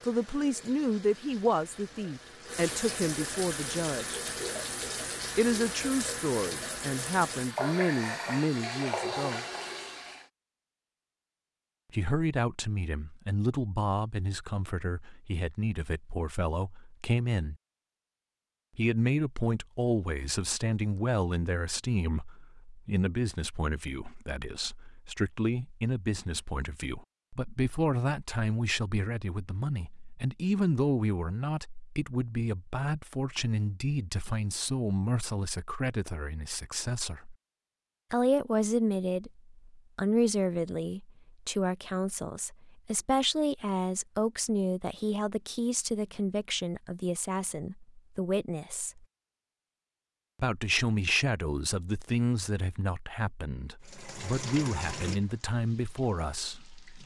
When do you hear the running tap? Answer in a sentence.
You can hear the running tap from 0.0 to 10.2 s and from 53.8 to 57.0 s.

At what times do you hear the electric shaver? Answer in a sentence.
The electric shaver can't be heard in this clip.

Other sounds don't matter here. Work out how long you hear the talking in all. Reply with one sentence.
You can hear the talking for 50 seconds altogether.